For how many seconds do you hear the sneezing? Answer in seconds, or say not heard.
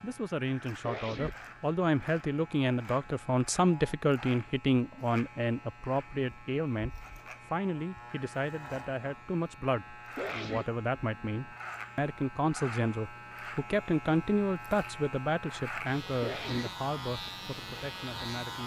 2 s.